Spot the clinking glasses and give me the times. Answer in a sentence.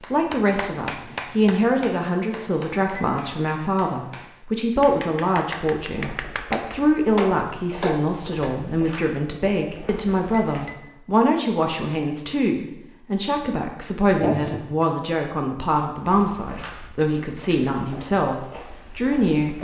The clinking glasses can be heard from 2.4 to 3.3 s, from 9.8 to 10.8 s and from 14.2 to 14.8 s.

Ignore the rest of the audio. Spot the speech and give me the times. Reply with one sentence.
The speech can be heard from 0.0 to 19.5 s.